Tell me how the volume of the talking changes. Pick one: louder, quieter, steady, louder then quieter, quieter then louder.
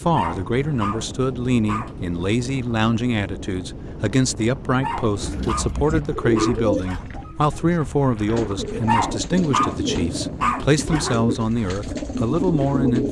steady.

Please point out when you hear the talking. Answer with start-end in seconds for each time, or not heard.
0.0-13.0.